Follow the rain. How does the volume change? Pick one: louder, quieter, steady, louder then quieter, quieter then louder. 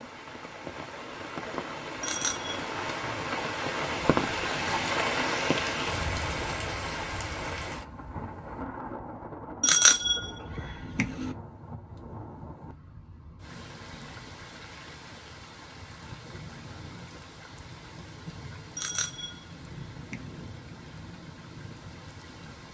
quieter.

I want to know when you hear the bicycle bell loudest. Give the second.
10 s.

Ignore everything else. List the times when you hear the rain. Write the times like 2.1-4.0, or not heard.
0.0-22.6.